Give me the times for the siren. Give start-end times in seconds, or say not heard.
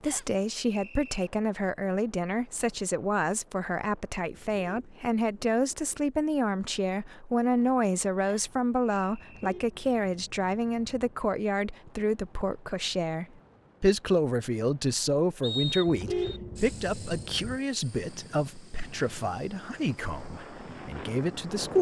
not heard.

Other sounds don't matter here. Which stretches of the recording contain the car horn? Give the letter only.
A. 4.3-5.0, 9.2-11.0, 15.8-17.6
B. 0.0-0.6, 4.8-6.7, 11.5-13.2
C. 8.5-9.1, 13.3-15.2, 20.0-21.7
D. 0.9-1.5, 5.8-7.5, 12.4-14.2
A.